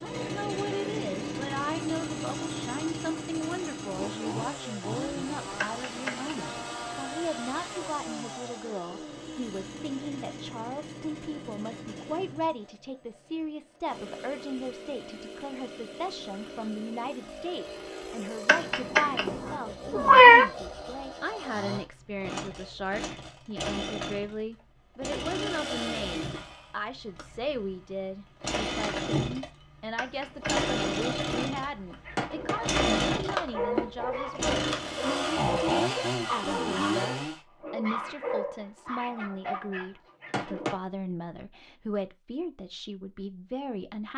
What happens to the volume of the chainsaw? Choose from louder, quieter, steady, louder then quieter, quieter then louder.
quieter then louder.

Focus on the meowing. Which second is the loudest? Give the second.
20 s.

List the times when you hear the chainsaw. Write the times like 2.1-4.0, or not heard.
0.0-37.4.